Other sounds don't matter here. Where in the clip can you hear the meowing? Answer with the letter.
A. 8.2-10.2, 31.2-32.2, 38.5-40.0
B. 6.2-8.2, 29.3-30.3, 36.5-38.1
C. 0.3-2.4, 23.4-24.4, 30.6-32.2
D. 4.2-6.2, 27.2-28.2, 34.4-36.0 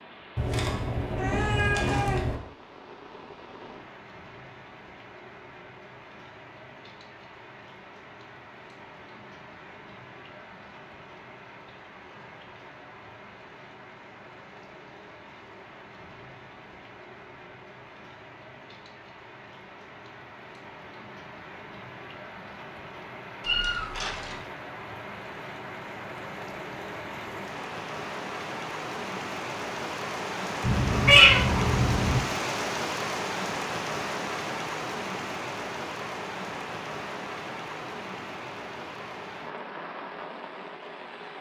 C.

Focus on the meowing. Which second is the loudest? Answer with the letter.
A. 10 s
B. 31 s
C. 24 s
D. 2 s
B.